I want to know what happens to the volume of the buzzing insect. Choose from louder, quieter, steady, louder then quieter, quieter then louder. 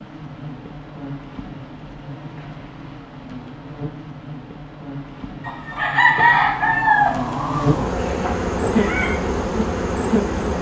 louder.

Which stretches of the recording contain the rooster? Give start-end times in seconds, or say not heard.
5.5-9.1.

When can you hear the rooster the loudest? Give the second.
6 s.